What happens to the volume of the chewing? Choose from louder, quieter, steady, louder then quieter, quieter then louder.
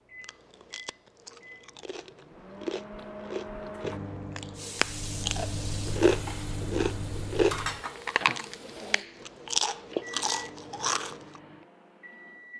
louder.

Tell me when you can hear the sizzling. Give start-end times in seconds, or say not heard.
4.5-9.1.